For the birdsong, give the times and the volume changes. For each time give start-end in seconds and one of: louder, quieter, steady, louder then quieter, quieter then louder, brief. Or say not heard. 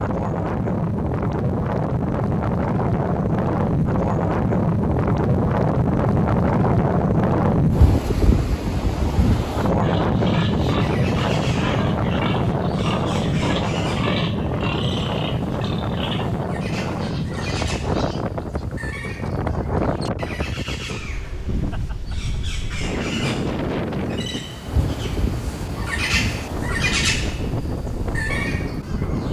10.8-29.2 louder.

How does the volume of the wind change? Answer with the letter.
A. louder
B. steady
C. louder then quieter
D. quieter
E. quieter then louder
D.